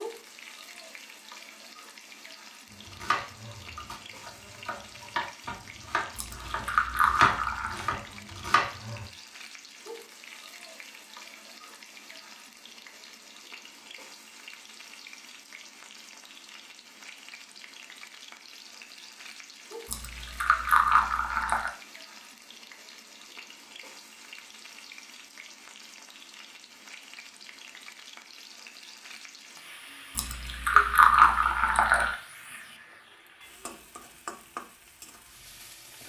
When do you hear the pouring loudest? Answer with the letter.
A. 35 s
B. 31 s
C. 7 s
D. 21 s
B.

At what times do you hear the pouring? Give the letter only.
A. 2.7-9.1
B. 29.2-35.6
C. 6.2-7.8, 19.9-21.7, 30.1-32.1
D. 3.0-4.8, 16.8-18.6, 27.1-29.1
C.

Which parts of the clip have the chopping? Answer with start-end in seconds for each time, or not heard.
2.7-9.1.